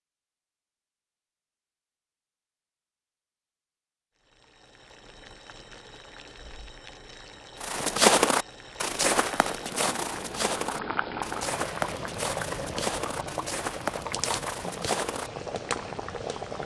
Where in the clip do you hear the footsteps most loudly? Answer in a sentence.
The loudest moment of the footsteps is at 8 seconds.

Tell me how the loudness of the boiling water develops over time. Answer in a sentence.
The loudness of the boiling water goes up.